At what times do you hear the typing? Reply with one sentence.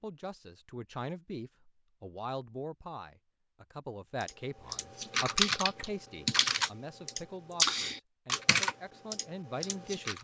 The typing can be heard from 4.2 to 10.1 s.